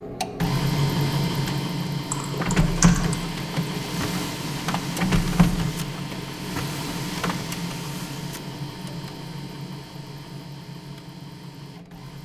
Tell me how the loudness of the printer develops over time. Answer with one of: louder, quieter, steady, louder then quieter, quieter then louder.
quieter.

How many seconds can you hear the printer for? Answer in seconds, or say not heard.
12 s.